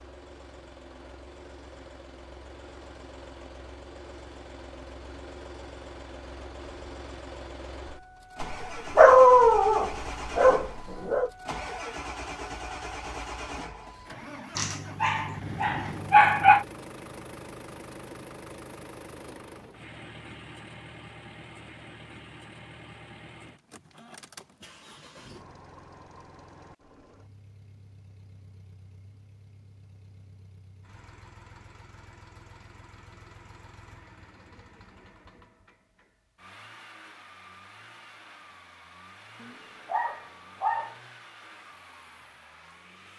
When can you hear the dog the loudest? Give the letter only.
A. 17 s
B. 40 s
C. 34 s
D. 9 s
D.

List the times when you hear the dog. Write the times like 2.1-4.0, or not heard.
8.4-11.3, 14.6-16.6, 39.4-41.0.